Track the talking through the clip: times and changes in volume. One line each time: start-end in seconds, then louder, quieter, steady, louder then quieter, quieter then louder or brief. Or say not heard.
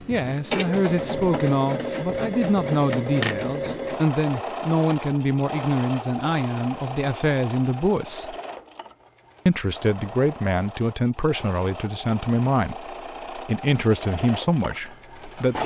0.1-8.3 steady
9.4-15.6 steady.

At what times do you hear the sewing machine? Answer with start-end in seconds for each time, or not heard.
0.0-15.6.